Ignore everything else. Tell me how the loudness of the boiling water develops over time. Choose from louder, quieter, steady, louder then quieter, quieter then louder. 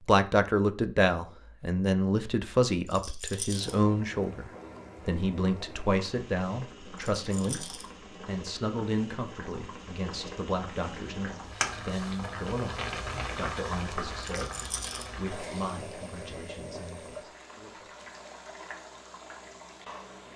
louder then quieter.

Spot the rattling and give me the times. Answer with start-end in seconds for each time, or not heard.
2.9-3.8, 7.2-7.8, 14.2-15.1.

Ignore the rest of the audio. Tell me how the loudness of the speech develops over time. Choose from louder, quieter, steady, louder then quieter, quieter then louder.
quieter.